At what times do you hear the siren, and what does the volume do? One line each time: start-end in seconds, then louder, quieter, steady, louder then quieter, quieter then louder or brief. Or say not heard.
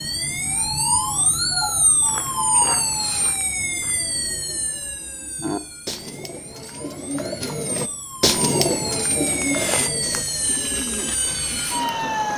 0.0-12.3 quieter then louder.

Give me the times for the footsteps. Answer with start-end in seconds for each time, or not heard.
1.9-4.1, 9.2-12.3.